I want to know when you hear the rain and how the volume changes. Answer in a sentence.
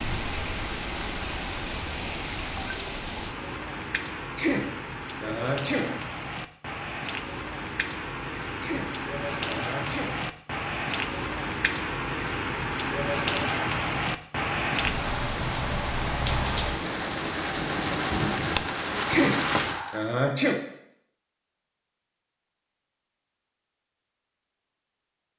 The rain can be heard from 0.0 to 20.1 s, getting louder.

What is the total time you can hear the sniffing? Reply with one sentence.
The sniffing can be heard for 5 seconds in total.